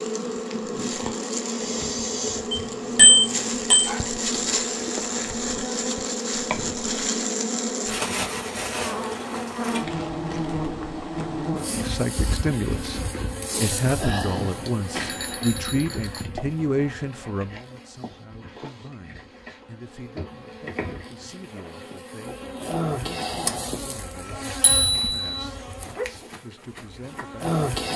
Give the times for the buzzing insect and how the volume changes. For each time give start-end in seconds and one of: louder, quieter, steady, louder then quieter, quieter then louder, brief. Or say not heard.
0.0-27.9 quieter then louder.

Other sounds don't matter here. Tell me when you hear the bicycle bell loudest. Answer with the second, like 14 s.
3 s.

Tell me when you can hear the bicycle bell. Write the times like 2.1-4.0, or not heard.
2.5-3.9, 14.9-16.2, 24.6-25.2.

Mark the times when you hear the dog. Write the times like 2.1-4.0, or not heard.
3.8-5.1, 25.9-26.4.